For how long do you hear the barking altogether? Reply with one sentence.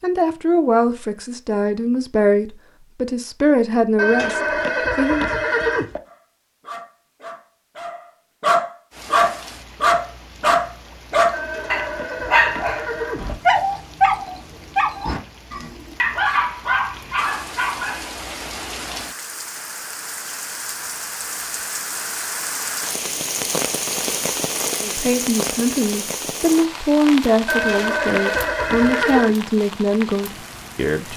You can hear the barking for 12 seconds altogether.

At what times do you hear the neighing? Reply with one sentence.
The neighing can be heard from 4.0 to 6.0 s, from 11.3 to 13.3 s and from 27.4 to 29.4 s.